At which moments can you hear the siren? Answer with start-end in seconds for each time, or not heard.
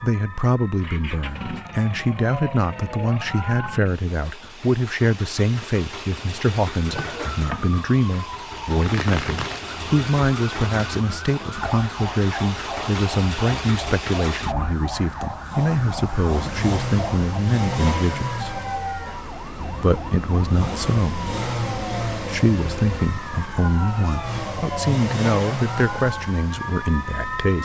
0.0-3.8, 6.8-27.5.